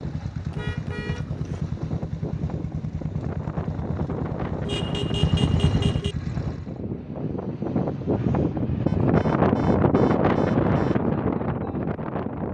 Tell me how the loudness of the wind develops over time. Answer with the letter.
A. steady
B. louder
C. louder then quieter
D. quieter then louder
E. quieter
B.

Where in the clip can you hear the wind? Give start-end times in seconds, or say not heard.
0.0-12.5.